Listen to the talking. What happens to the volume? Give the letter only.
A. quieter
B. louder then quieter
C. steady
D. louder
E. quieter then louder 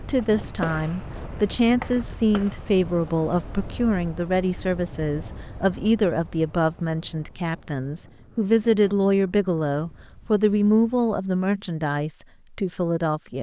C.